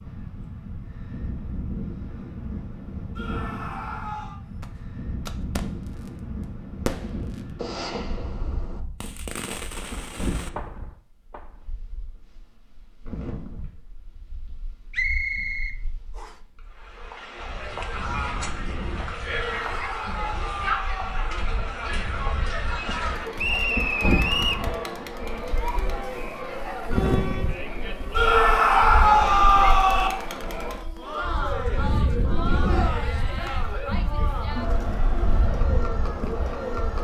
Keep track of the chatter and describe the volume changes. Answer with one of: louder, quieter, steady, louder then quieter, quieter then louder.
steady.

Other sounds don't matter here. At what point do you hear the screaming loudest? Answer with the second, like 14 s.
29 s.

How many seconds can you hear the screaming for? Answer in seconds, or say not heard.
5 s.